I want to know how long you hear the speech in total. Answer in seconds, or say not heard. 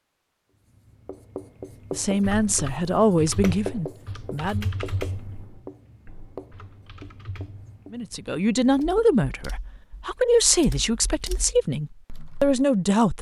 8 s.